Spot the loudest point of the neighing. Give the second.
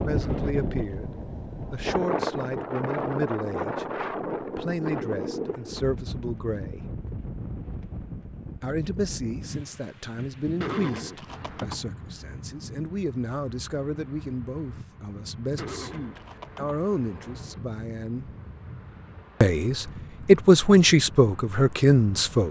11 s.